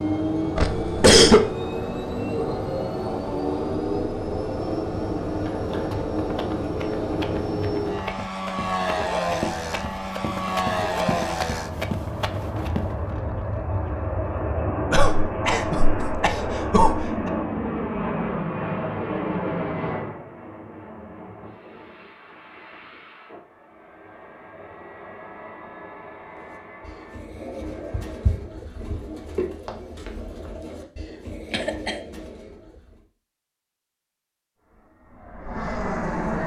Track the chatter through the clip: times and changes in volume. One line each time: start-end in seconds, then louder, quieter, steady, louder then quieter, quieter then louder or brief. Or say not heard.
not heard.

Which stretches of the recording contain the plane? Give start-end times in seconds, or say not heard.
0.0-28.4, 34.6-36.4.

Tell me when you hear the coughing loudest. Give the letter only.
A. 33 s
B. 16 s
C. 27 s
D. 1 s
D.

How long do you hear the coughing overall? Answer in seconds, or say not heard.
4 s.